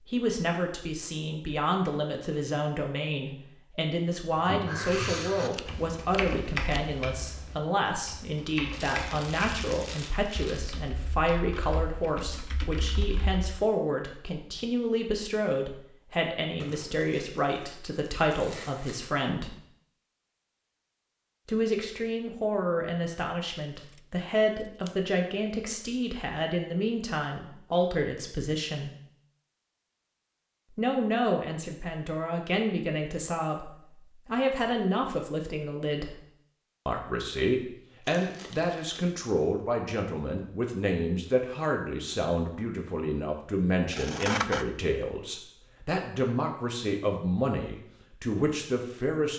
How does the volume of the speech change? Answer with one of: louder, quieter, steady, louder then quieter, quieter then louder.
steady.